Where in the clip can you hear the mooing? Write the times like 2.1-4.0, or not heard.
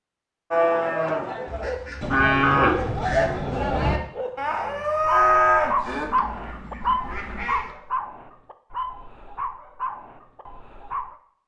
0.5-6.1.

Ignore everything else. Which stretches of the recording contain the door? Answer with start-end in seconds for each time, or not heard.
not heard.